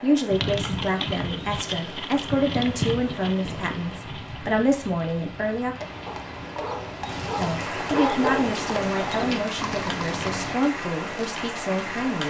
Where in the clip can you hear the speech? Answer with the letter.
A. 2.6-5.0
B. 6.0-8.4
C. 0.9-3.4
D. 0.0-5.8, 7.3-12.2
D.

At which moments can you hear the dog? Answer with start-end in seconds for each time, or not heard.
6.0-8.4.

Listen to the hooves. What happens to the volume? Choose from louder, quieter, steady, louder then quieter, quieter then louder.
quieter then louder.